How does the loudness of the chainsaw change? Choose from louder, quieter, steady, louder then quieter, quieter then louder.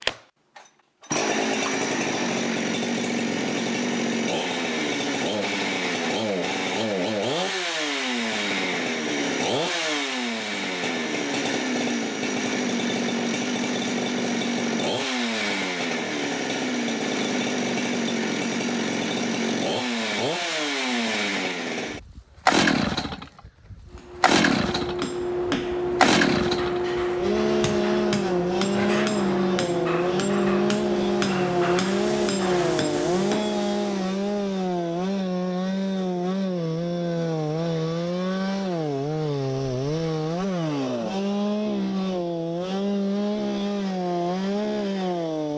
steady.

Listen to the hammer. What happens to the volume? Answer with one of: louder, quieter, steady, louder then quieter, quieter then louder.
steady.